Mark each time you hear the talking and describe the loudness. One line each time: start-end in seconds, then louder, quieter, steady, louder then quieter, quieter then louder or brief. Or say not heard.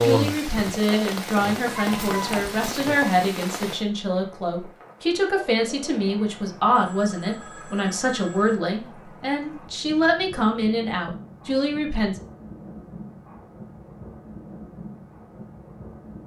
0.0-12.2 steady.